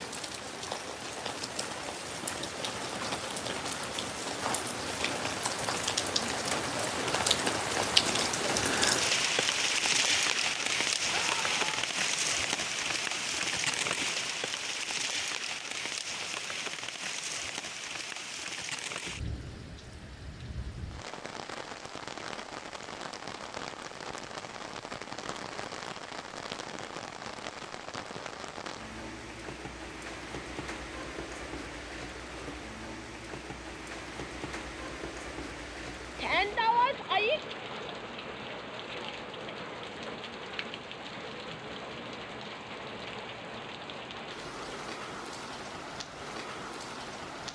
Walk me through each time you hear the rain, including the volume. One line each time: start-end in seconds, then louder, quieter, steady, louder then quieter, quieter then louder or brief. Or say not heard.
0.0-47.5 quieter.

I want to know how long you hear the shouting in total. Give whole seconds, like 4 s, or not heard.
2 s.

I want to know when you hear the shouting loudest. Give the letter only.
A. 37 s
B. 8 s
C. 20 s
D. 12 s
A.